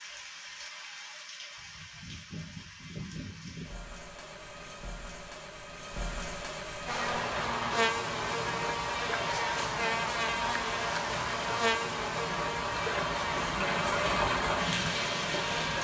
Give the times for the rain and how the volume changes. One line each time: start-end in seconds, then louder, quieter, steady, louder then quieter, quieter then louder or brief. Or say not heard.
0.0-15.8 louder.